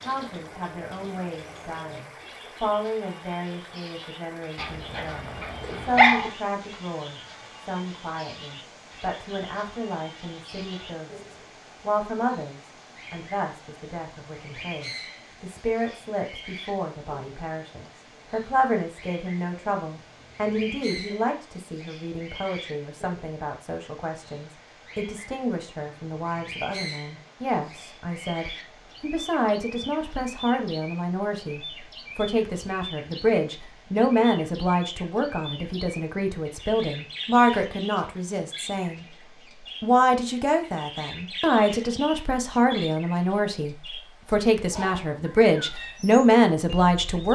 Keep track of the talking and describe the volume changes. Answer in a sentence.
The loudness of the talking goes up.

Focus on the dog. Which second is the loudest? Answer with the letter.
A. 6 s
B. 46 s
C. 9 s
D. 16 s
A.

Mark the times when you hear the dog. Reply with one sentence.
The dog can be heard from 4.5 to 6.3 s.